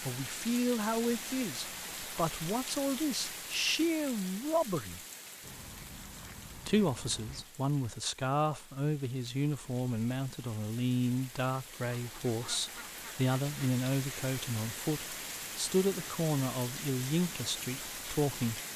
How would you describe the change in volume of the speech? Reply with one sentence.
The loudness of the speech stays about the same.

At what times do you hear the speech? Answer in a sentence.
You can hear the speech from 0.0 to 5.0 s and from 6.5 to 18.6 s.